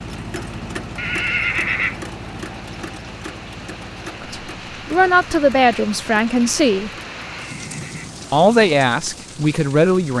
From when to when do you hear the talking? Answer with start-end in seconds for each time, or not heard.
4.2-6.9, 8.3-10.1.